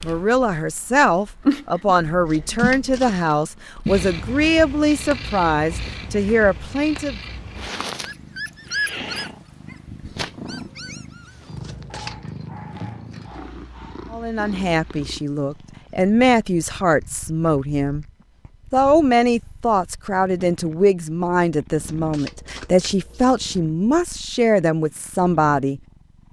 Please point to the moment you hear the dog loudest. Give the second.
9 s.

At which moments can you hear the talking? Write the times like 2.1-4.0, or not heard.
0.0-7.2, 14.1-18.1, 18.7-25.8.